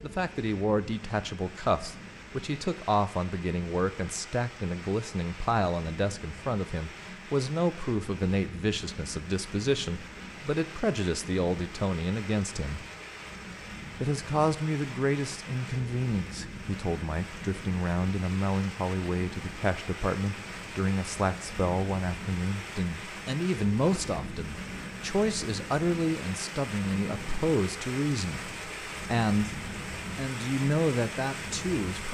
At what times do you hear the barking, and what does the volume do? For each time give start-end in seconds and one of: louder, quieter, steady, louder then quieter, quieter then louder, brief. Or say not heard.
not heard.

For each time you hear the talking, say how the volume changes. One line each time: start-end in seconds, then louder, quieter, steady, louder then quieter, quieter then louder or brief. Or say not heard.
0.0-12.8 steady
14.0-32.0 steady.